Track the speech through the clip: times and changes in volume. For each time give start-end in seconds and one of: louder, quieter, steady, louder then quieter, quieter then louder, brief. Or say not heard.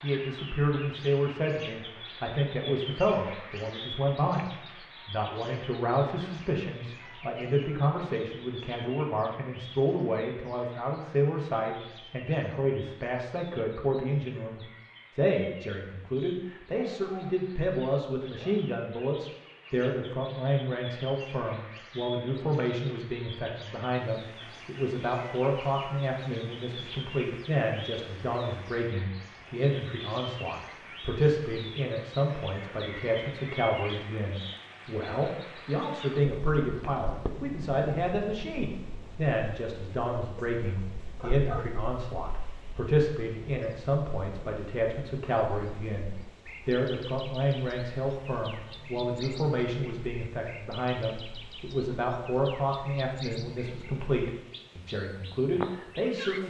0.0-56.4 steady.